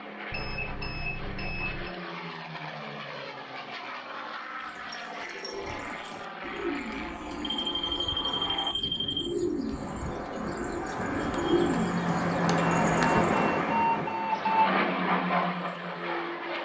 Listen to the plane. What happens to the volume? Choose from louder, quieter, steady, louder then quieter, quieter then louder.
louder.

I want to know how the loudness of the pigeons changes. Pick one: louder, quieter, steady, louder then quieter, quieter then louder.
louder.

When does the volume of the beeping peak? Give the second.
14 s.